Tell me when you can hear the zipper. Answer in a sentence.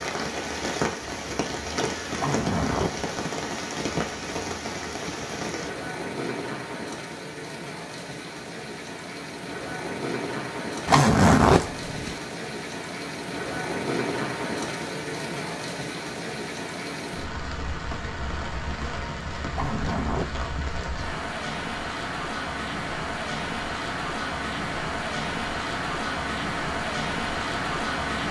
You can hear the zipper from 2.1 to 3.0 s, from 10.8 to 12.2 s and from 19.5 to 20.4 s.